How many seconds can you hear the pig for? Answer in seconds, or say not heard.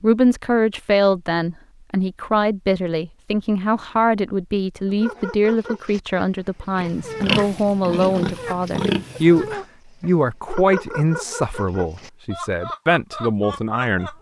3 s.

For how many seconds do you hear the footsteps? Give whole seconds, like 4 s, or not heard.
not heard.